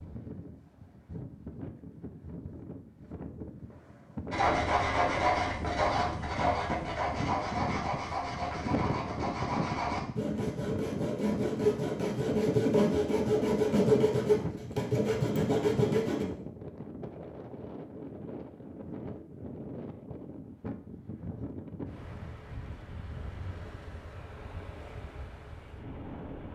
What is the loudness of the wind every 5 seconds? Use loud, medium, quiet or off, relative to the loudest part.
medium, loud, loud, medium, medium, medium.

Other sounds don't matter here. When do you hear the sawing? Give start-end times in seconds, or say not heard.
4.3-16.2.